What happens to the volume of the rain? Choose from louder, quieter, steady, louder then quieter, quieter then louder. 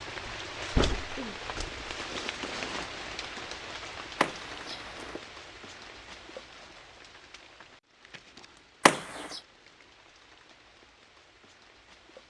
quieter.